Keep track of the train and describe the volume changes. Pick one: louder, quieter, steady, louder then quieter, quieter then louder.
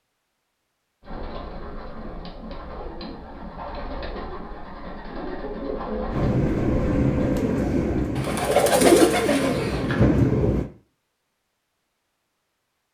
quieter then louder.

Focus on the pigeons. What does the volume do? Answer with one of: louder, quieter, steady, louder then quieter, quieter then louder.
louder.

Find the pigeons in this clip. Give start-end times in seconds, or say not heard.
1.0-10.6.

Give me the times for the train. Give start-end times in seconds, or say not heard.
6.1-10.7.